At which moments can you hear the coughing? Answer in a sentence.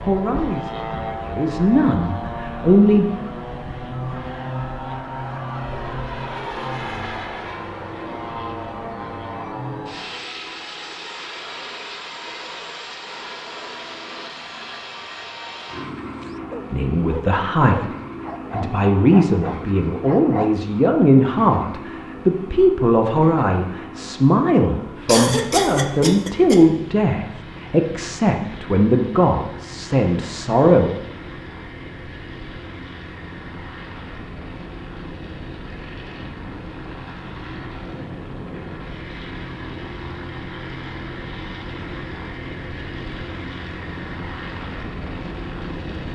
You can hear the coughing from 25.1 to 26.6 s.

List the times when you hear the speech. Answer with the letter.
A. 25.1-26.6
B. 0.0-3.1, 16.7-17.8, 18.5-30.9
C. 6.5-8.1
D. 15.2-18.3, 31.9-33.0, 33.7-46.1
B.